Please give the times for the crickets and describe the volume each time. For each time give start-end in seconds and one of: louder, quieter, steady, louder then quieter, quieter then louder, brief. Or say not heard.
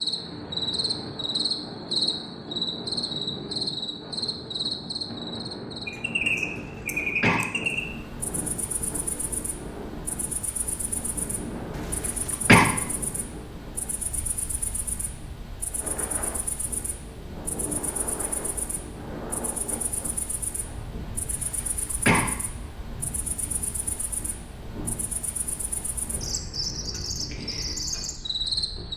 0.0-28.9 quieter then louder.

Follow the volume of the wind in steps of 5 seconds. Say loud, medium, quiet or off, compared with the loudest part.
loud, loud, loud, loud, medium, medium.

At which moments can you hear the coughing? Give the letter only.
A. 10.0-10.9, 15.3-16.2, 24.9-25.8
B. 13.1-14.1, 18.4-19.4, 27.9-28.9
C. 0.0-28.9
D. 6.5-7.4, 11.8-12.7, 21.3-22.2
D.